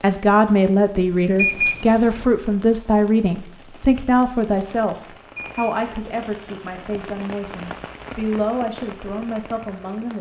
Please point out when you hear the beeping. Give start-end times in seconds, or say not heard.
1.4-2.2, 5.3-6.2.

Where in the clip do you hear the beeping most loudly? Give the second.
2 s.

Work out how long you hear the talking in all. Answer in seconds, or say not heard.
10 s.